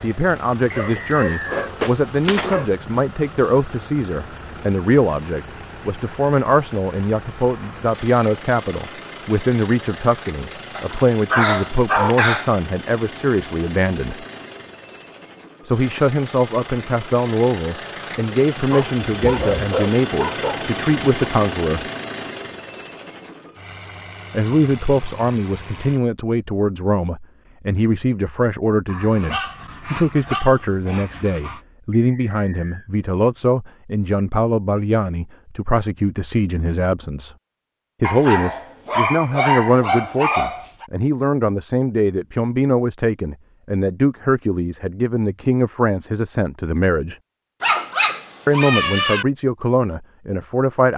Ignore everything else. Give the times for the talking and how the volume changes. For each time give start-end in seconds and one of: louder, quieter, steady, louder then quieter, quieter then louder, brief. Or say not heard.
0.0-14.2 steady
15.7-21.9 steady
24.3-37.4 steady
38.0-47.1 steady
48.5-50.9 brief.